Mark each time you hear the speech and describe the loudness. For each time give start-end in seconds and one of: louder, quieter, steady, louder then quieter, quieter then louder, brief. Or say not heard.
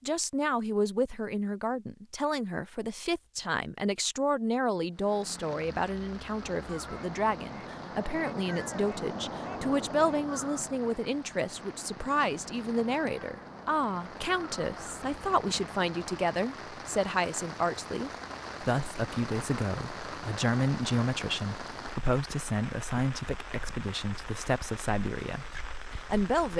0.0-26.5 steady.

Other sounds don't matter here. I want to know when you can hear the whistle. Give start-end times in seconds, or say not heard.
not heard.